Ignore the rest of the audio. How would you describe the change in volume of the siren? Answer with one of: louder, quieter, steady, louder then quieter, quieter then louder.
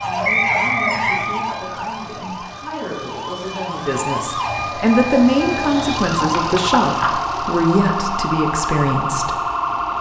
quieter then louder.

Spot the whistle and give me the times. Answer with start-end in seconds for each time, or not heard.
0.2-1.2.